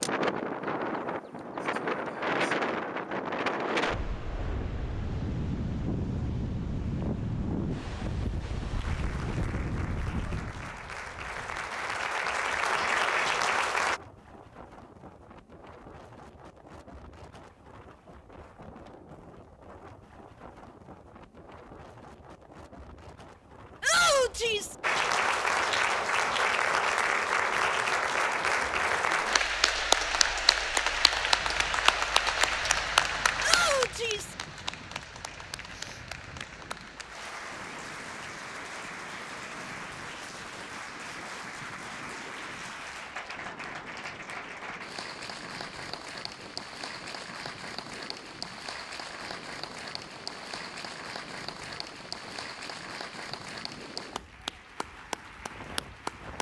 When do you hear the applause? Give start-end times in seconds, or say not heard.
8.7-14.0, 24.8-56.3.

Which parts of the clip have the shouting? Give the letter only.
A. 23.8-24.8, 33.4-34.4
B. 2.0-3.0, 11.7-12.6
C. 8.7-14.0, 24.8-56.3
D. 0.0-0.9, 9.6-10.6
A.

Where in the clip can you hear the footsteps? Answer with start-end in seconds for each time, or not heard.
not heard.